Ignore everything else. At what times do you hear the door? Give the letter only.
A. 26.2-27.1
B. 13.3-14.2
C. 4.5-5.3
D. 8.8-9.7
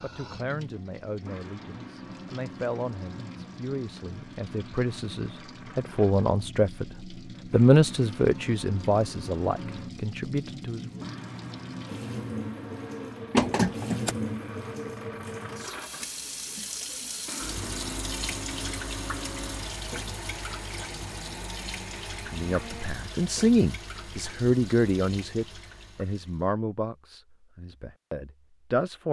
B.